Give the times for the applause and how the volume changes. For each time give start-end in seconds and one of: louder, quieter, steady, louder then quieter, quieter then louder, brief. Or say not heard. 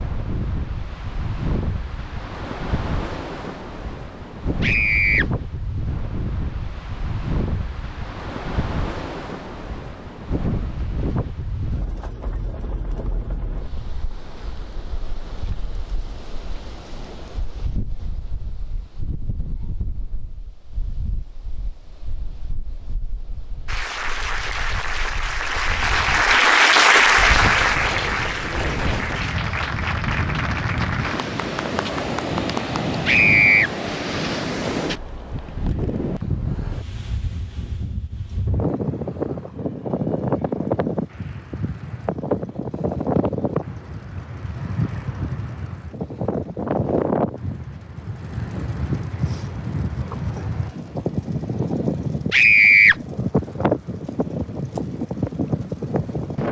23.6-32.8 louder then quieter.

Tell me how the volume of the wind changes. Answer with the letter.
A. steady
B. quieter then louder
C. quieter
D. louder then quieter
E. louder
B.